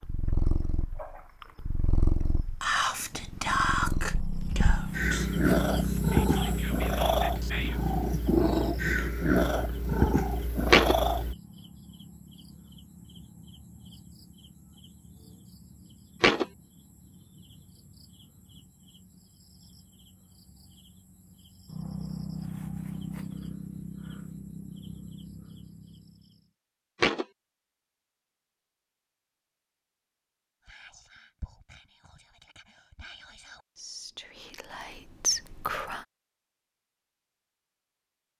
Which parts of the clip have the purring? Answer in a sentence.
The purring can be heard from 0.0 to 11.3 s.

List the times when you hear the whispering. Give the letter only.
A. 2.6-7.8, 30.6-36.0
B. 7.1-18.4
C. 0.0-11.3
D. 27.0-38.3
A.